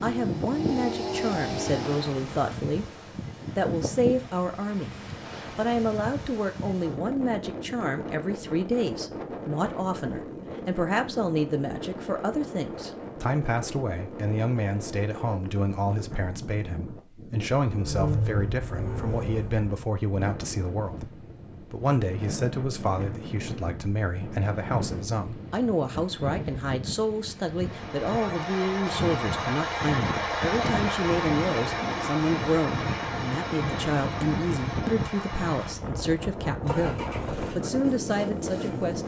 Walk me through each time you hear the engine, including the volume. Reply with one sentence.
You can hear the engine briefly from 0.0 to 2.1 s; briefly from 17.6 to 19.7 s; and from 27.6 to 39.0 s, getting quieter.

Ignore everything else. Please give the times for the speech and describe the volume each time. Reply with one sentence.
The speech can be heard briefly from 0.0 to 2.9 s; and from 3.5 to 39.0 s, at a steady volume.